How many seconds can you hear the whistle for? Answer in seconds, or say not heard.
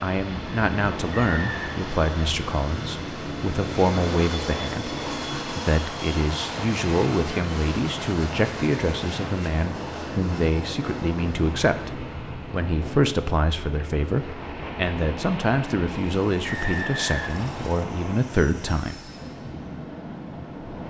2 s.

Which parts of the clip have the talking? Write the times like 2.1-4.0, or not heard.
0.0-18.9.